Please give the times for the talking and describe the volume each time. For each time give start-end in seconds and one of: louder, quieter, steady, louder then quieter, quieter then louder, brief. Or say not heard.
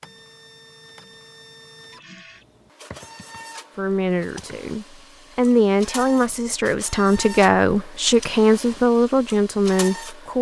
3.8-10.3 louder.